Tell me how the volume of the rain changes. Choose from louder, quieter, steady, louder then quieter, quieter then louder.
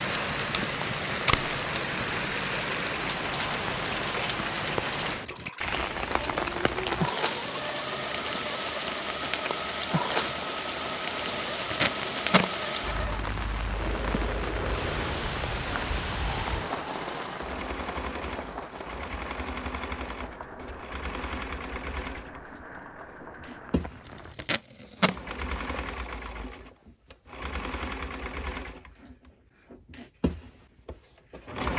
quieter.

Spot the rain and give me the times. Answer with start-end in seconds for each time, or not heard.
0.0-24.4.